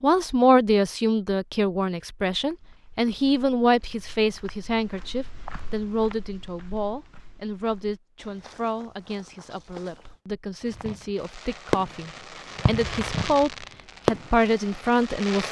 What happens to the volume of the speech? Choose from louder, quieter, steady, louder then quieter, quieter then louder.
quieter then louder.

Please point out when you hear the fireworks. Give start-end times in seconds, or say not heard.
10.7-15.4.